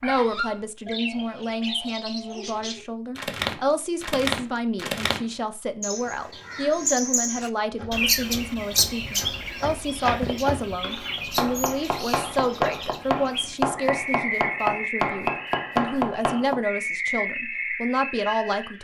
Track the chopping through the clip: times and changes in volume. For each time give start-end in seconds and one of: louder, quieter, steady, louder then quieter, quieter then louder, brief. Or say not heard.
7.7-16.6 louder.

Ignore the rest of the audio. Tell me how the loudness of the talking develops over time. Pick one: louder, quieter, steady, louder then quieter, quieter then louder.
steady.